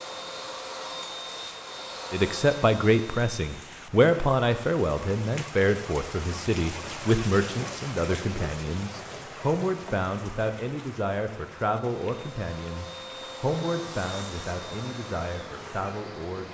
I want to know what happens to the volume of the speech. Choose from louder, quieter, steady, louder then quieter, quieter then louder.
quieter.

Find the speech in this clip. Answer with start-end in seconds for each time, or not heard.
2.1-16.4.